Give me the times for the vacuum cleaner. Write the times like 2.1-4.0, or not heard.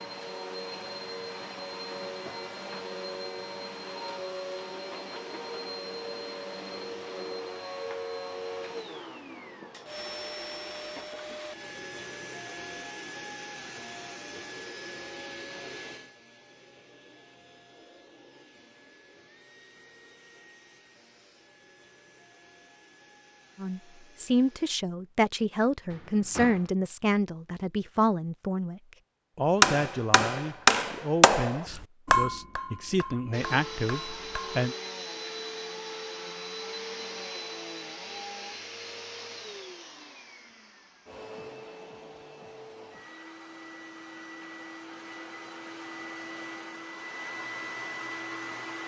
0.0-24.8, 33.3-48.8.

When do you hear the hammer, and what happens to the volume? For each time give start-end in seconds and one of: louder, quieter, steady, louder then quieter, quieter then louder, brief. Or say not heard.
29.6-34.7 quieter.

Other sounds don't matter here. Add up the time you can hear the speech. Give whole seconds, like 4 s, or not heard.
11 s.